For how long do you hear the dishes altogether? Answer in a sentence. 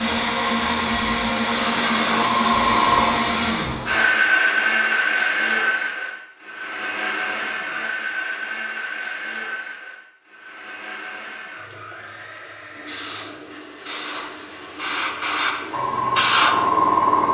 You can't hear the dishes here.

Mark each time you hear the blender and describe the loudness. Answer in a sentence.
The blender can be heard from 0.0 to 17.2 s, getting quieter.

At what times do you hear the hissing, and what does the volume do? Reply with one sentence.
The hissing can be heard from 0.0 to 4.1 s, getting louder then quieter; and from 12.8 to 17.2 s, getting louder.